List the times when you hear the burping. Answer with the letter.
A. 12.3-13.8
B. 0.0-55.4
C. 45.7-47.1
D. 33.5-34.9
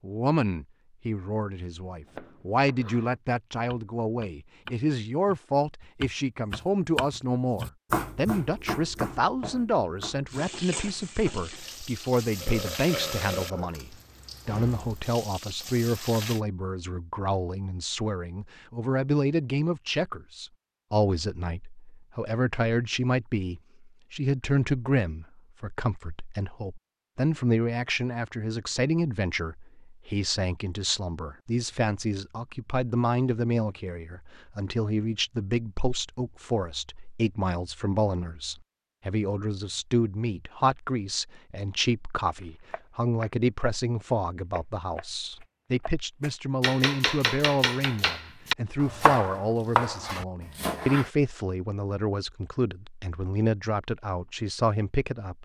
A.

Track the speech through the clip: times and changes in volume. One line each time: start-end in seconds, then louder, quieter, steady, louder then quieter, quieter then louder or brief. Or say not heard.
0.0-55.4 steady.